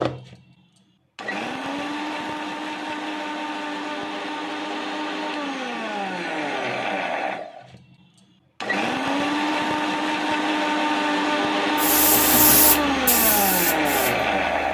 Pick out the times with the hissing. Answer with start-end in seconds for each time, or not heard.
11.8-14.6.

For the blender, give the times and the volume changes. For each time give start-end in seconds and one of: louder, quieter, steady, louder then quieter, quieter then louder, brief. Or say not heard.
0.0-14.6 louder.